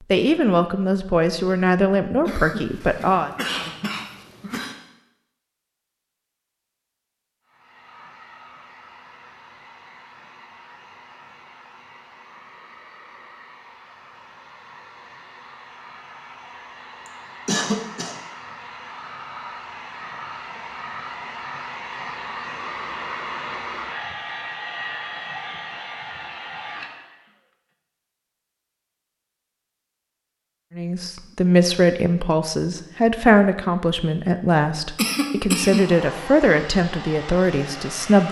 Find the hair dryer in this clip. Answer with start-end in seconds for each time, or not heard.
7.5-27.4, 35.6-38.2.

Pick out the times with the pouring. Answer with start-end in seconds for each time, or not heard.
not heard.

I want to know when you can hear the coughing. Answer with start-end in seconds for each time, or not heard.
2.2-4.8, 17.1-18.1, 35.0-35.9.